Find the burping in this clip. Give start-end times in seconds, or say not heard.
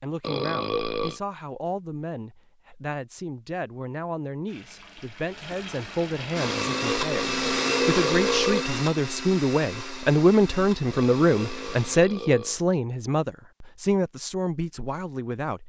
0.2-1.2, 6.4-8.7, 10.9-12.6.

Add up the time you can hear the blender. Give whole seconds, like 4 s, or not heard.
6 s.